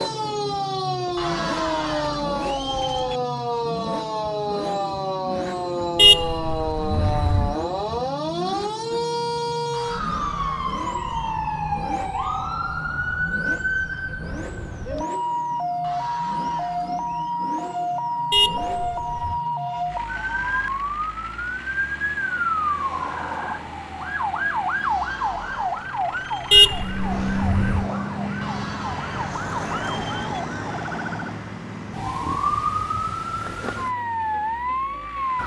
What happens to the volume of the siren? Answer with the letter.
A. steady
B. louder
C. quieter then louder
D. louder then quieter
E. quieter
A.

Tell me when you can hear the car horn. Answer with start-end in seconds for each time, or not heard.
6.0-7.5, 18.3-19.4, 26.5-27.9.